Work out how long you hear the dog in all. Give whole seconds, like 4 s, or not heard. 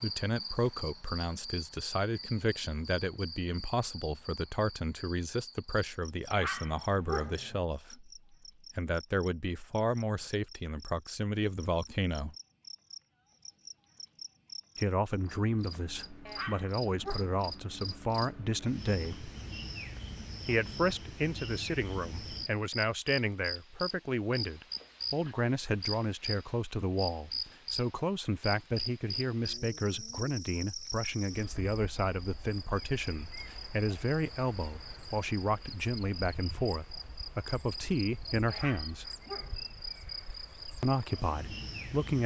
4 s.